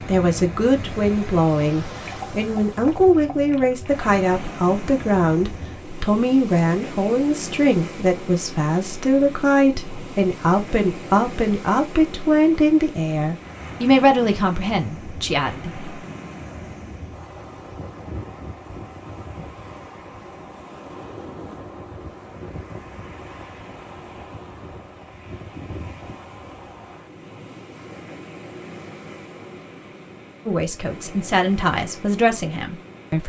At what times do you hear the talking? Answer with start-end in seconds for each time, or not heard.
0.1-15.7, 30.4-33.2.